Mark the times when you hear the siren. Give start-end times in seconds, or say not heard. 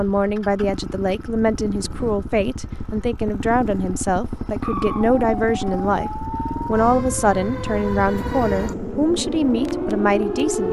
4.6-10.6.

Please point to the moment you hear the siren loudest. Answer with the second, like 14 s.
10 s.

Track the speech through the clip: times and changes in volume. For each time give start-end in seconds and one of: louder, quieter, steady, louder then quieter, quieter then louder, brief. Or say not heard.
0.0-10.6 steady.